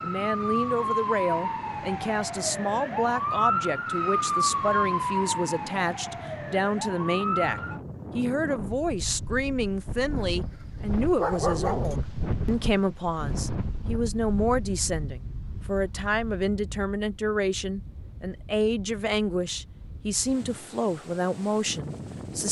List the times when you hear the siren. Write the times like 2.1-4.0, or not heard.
0.0-7.8.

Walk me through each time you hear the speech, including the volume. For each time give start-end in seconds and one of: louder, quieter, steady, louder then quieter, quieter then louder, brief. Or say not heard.
0.0-22.4 steady.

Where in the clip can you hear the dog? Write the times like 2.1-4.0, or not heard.
11.0-12.0.